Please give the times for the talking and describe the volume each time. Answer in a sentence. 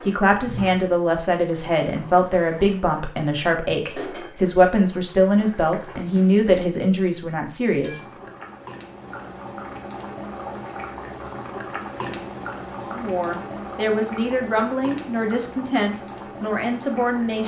You can hear the talking from 0.0 to 8.1 s, at a steady volume; and from 12.8 to 17.4 s, at a steady volume.